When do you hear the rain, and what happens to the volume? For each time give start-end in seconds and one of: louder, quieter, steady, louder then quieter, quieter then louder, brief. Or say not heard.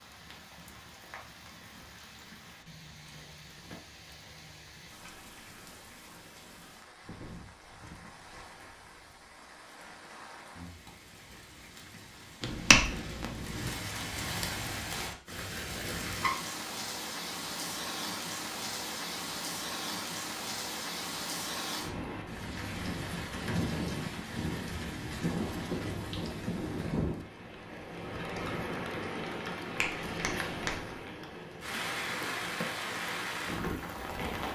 0.0-34.5 louder.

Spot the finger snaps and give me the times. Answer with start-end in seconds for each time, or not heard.
12.4-13.7, 29.8-30.9.